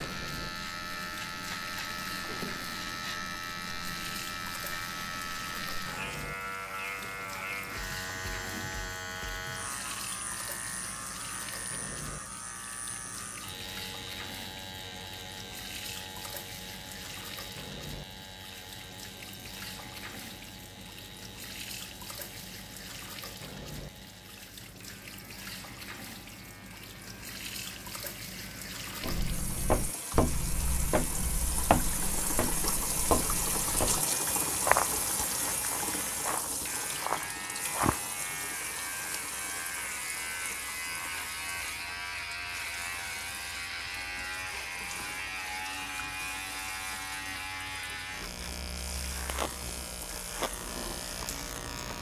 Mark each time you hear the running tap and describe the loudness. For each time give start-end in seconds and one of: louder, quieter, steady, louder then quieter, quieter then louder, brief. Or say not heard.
0.0-51.9 louder then quieter.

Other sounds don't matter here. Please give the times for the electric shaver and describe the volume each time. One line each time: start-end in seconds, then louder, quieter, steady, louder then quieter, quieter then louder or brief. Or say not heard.
0.0-51.9 quieter then louder.